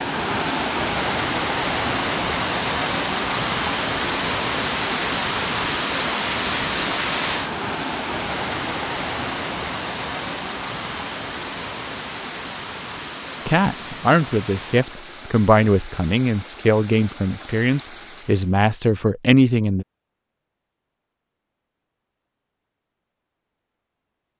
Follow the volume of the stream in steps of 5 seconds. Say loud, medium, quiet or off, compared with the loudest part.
loud, loud, medium, quiet, off.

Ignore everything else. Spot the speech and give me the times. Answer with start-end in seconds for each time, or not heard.
13.4-19.9.